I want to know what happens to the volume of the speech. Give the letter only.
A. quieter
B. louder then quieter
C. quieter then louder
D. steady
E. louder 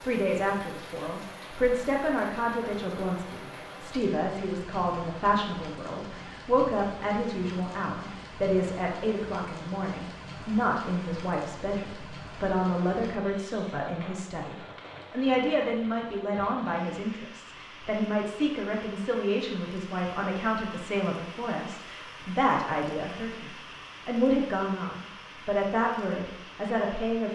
D.